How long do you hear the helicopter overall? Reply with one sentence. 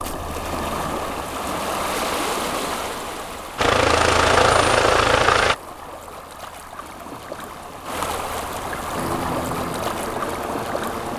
You can hear the helicopter for 4 seconds altogether.